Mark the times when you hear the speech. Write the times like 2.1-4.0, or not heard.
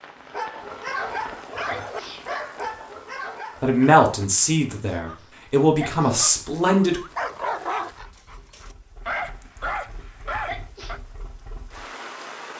3.6-7.0.